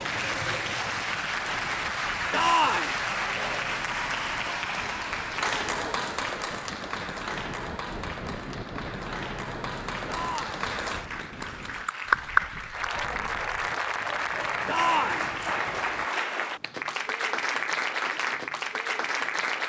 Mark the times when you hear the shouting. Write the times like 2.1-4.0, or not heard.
2.3-3.0, 10.1-10.7, 14.7-15.3.